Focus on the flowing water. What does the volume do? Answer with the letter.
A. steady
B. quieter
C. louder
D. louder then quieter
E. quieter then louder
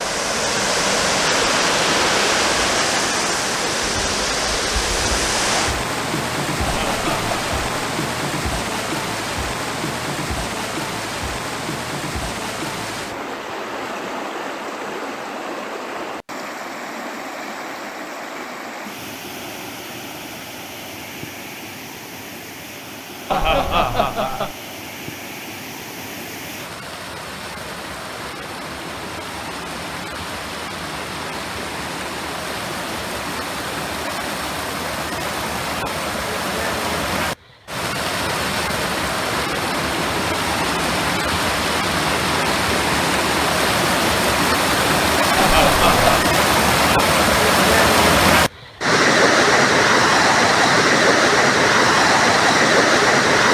E.